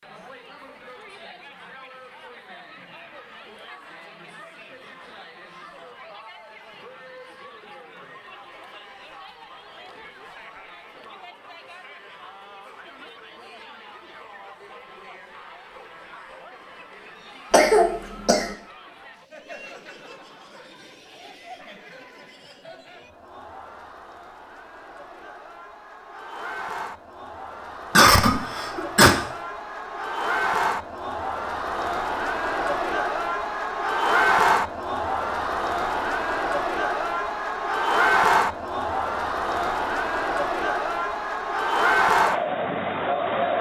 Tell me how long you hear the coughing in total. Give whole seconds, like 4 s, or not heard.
2 s.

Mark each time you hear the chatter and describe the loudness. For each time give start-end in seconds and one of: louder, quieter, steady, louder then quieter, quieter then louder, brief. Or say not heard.
0.0-43.5 louder.